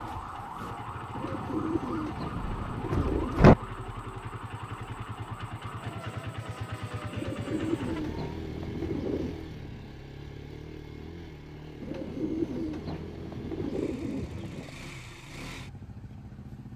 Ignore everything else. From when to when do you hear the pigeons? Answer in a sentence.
You can hear the pigeons from 1.1 to 3.5 s, from 7.1 to 9.4 s and from 11.8 to 14.7 s.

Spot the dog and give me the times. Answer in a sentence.
You can't hear the dog here.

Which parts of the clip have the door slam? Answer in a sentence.
The door slam can be heard from 2.4 to 3.5 s.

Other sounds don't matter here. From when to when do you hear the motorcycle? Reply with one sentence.
You can hear the motorcycle from 0.0 to 16.7 s.